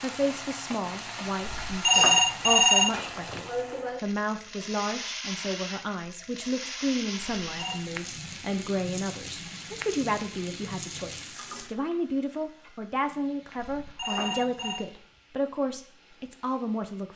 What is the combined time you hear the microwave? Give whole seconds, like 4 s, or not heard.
not heard.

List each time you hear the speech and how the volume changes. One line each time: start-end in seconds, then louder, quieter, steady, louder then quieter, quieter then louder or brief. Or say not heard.
0.0-17.1 steady.